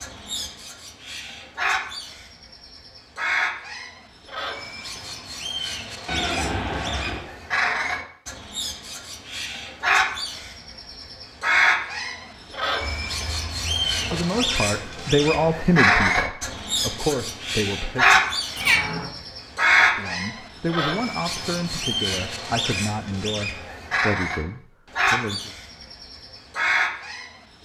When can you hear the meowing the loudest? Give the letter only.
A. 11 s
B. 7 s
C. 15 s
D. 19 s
D.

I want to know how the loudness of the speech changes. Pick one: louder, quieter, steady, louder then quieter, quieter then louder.
quieter.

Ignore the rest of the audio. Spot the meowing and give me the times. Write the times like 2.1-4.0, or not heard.
6.0-7.2, 12.8-14.2, 18.6-19.1.